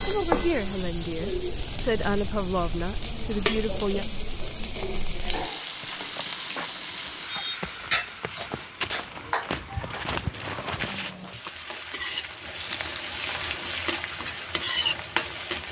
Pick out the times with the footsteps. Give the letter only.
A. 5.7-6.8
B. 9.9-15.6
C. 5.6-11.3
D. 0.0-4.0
C.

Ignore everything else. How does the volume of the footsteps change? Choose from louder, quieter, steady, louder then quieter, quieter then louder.
louder.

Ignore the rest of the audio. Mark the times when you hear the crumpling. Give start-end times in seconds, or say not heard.
12.6-13.7.